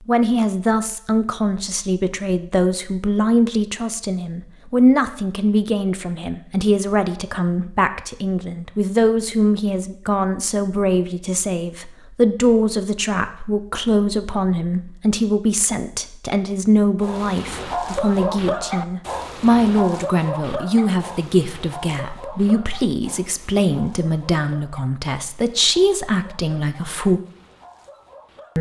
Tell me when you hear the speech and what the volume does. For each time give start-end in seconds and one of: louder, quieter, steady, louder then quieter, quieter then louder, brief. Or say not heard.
0.1-27.2 steady.